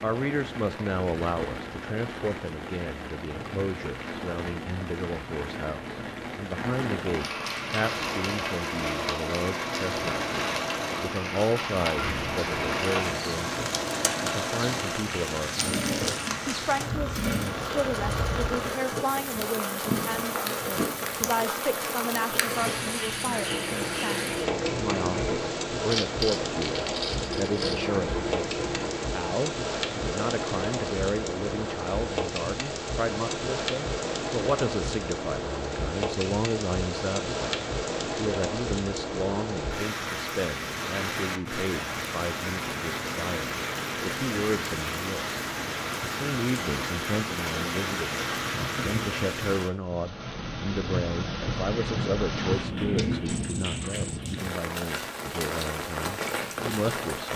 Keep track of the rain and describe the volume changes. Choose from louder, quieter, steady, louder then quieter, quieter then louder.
steady.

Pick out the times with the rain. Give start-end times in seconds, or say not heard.
0.0-57.3.